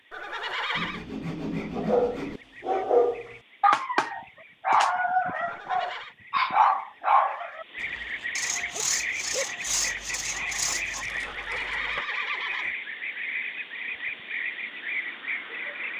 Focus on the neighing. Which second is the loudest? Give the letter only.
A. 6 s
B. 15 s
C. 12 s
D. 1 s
D.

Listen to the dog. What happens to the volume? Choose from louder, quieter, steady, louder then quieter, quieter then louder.
quieter.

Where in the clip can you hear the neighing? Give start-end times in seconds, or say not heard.
0.1-1.1, 5.5-6.2, 11.2-12.8.